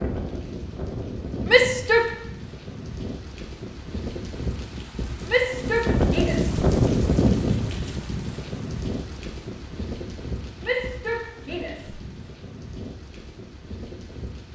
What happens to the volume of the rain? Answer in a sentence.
The loudness of the rain goes up, then down.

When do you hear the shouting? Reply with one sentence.
The shouting can be heard from 1.4 to 2.1 s, from 5.2 to 6.6 s and from 10.6 to 11.9 s.